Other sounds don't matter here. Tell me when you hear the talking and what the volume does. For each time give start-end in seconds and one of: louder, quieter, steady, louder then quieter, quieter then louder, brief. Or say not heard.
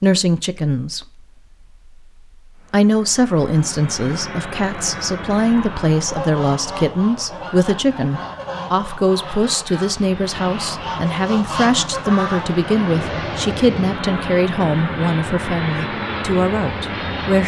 0.0-1.2 brief
2.7-17.4 steady.